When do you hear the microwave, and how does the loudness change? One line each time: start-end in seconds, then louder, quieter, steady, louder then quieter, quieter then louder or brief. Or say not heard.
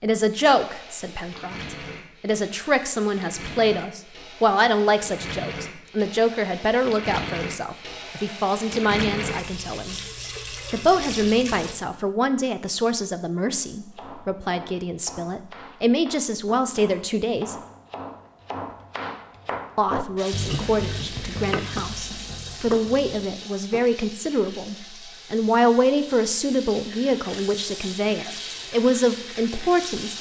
not heard.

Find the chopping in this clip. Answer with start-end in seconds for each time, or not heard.
13.5-23.2.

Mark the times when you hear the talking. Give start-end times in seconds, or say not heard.
0.0-10.0, 10.7-17.6, 19.8-30.1.